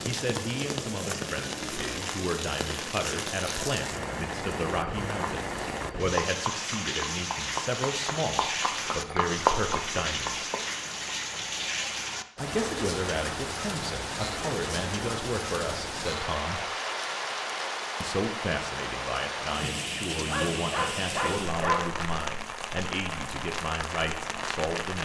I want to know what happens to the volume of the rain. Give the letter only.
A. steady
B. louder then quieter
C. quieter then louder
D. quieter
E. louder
A.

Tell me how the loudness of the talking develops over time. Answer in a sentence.
The volume of the talking stays about the same.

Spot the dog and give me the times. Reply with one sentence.
The dog can be heard from 20.2 to 21.9 s.